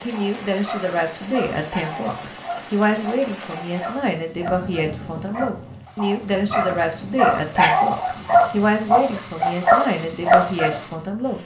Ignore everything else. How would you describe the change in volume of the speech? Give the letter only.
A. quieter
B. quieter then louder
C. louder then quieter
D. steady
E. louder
D.